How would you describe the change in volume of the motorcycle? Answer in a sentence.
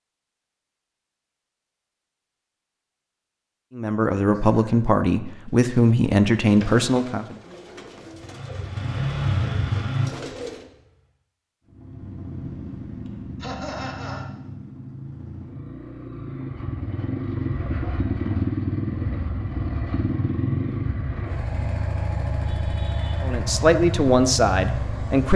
The loudness of the motorcycle goes down, then up.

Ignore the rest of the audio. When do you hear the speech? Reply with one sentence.
You can hear the speech from 3.8 to 7.3 s and from 23.2 to 25.3 s.